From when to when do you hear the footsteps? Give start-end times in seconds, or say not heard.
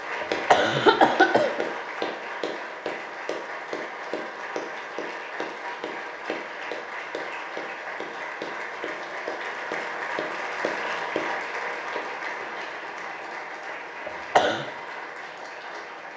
not heard.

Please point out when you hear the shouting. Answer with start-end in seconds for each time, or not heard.
not heard.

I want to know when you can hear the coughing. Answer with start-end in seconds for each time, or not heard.
0.2-1.6, 14.1-14.7.